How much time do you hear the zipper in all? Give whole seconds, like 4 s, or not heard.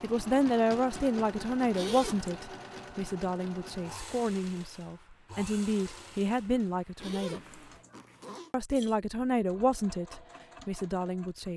2 s.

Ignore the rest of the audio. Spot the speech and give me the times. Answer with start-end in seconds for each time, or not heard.
0.0-7.4, 8.5-11.5.